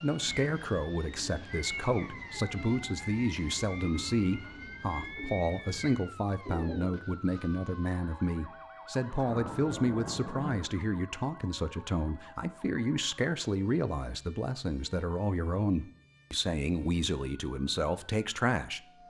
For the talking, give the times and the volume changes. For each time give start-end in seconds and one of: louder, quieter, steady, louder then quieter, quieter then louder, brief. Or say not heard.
0.0-18.8 steady.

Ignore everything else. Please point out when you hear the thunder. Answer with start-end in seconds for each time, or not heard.
9.1-10.6.